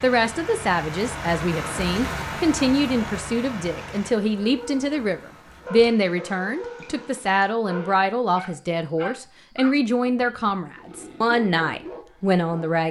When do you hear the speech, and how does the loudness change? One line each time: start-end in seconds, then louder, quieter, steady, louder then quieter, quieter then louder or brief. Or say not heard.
0.0-12.8 steady.